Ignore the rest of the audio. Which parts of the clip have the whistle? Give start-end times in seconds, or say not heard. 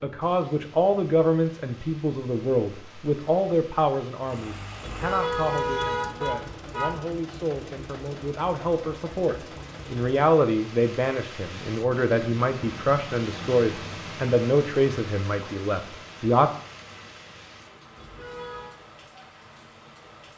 not heard.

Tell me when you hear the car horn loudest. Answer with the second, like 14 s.
6 s.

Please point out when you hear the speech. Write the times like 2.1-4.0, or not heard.
0.0-16.5.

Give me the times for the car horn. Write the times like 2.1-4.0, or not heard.
4.8-7.1, 17.9-18.8.